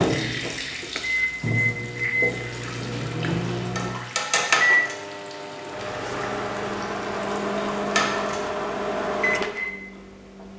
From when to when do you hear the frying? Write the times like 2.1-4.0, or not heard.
0.0-8.5.